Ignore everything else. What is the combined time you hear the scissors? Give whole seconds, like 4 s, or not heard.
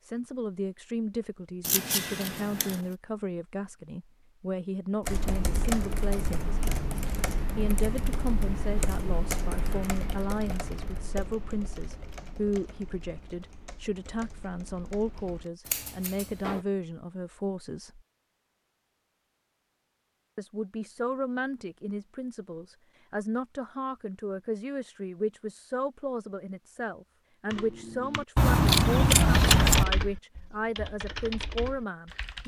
4 s.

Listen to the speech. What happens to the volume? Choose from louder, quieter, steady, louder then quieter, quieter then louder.
steady.